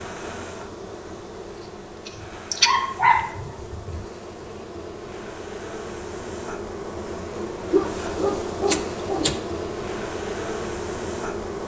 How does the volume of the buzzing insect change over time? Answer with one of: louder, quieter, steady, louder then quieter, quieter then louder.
louder.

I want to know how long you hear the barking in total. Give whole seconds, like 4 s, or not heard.
4 s.